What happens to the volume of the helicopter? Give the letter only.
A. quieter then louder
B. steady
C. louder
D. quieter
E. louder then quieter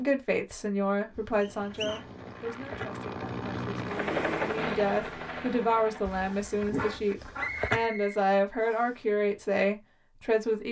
E.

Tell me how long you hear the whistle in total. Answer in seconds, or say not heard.
2 s.